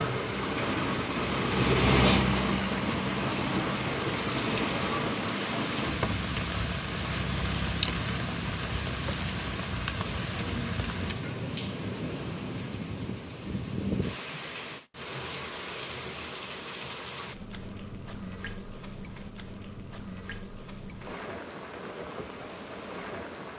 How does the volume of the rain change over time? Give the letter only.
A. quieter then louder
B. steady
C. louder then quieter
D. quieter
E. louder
D.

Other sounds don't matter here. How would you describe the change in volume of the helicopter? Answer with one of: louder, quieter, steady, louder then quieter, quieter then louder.
louder then quieter.